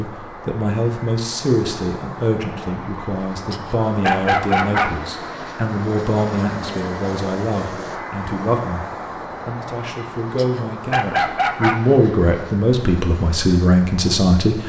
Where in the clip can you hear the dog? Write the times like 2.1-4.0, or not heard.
3.5-4.9, 10.3-11.8.